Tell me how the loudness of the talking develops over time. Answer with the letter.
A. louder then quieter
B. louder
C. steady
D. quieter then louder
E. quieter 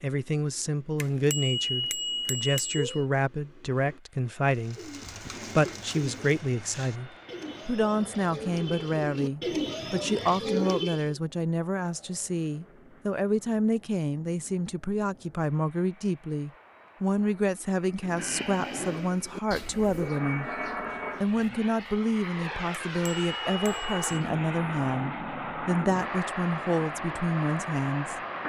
C.